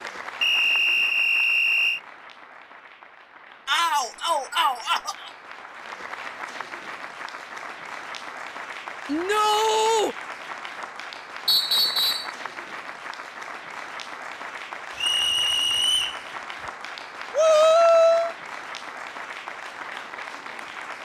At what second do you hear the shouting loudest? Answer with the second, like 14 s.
18 s.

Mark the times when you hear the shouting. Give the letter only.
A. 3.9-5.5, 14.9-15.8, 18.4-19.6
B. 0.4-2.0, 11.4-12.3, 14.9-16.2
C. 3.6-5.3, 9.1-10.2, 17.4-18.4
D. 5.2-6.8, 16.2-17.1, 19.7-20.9
C.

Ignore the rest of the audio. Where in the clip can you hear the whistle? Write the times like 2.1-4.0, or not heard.
0.4-2.0, 11.4-12.3, 14.9-16.2.